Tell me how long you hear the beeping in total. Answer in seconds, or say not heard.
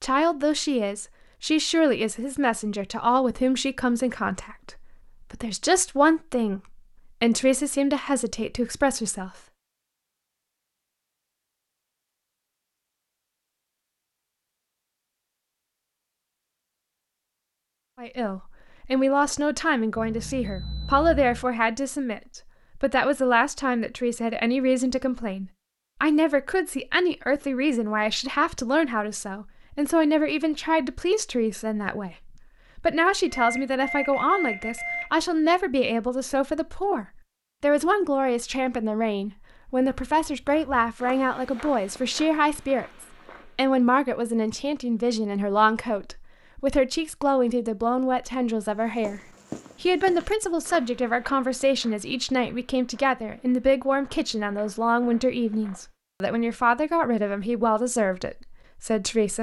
3 s.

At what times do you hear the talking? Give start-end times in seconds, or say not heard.
0.0-9.3, 17.9-49.2, 49.8-59.3.